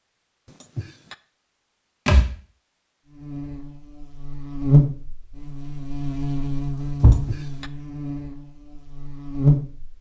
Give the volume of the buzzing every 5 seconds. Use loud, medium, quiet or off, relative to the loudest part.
loud, medium.